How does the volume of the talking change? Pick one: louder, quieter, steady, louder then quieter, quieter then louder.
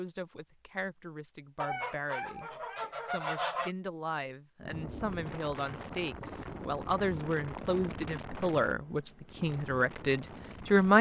louder.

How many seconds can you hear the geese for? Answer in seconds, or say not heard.
2 s.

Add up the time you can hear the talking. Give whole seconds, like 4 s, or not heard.
11 s.